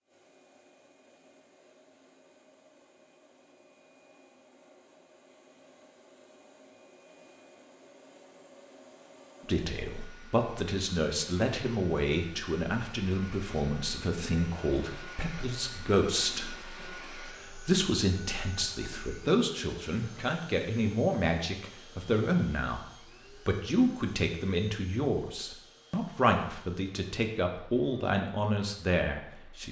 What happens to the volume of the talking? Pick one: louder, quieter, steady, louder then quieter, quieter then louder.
steady.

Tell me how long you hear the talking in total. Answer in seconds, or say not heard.
20 s.